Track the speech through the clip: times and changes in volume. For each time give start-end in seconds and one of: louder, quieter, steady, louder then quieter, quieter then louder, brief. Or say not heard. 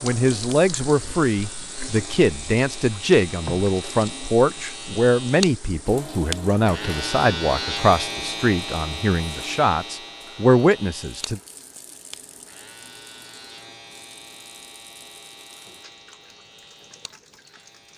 0.0-11.4 steady.